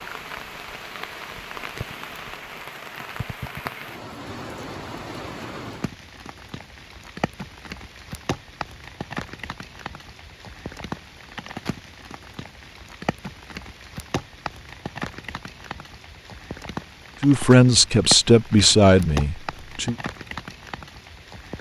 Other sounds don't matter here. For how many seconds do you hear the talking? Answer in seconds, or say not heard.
3 s.